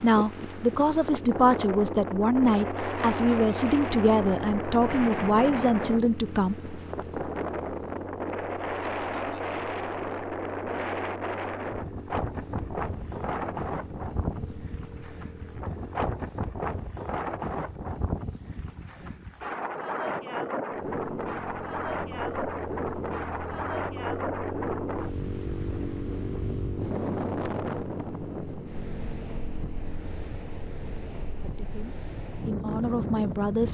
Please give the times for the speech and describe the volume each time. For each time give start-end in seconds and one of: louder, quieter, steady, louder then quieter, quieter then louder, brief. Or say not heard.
0.0-6.5 steady
31.6-33.6 brief.